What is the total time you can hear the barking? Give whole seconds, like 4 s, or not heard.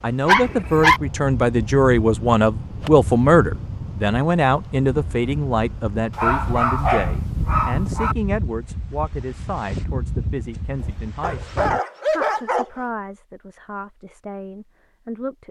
4 s.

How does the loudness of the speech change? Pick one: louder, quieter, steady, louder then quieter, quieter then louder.
quieter.